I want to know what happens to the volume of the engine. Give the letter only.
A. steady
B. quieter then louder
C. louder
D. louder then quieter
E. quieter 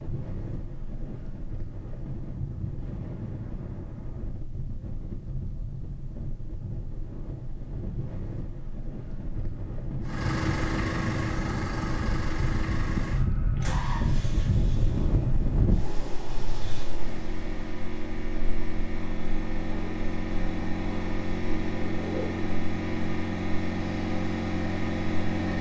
B.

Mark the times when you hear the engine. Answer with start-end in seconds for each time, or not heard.
10.0-25.5.